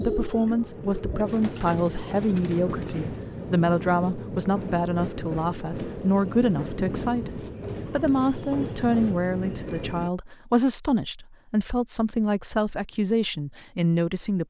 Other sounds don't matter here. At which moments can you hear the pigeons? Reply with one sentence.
You can hear the pigeons from 0.0 to 1.9 s.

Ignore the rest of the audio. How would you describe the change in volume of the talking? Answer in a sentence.
The volume of the talking stays about the same.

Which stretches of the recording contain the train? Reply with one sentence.
The train can be heard from 0.1 to 10.1 s.